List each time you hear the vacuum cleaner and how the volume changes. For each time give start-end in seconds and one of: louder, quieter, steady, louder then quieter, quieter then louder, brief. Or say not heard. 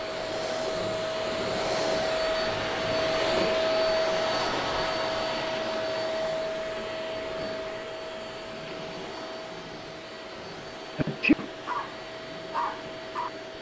0.0-13.5 quieter.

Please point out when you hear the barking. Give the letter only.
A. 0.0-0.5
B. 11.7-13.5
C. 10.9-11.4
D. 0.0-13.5
B.